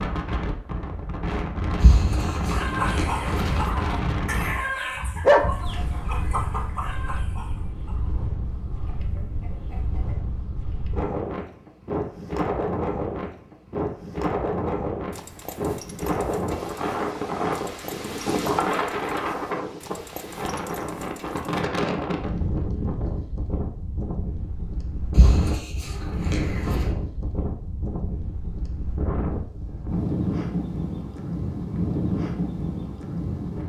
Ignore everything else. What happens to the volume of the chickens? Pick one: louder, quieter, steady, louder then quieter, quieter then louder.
quieter.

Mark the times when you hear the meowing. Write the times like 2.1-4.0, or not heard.
1.8-3.7, 25.1-26.9.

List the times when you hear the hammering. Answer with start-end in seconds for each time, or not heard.
not heard.